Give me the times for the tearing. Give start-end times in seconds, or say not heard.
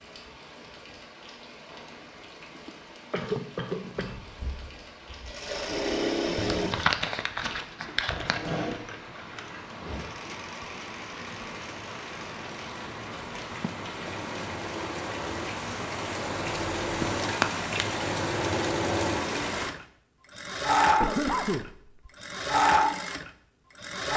6.3-8.4, 16.9-17.7.